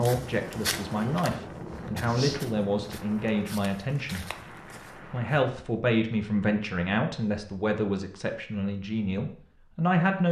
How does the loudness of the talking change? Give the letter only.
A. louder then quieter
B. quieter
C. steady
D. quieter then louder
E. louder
C.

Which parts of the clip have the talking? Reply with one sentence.
The talking can be heard from 0.0 to 4.3 s and from 5.1 to 10.2 s.